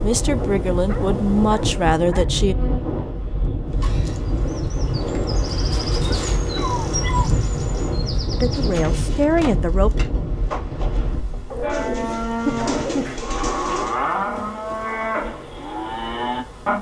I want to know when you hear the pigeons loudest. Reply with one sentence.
The volume of the pigeons peaks at 13 seconds.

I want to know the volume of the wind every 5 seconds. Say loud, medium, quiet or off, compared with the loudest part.
loud, loud, medium, off.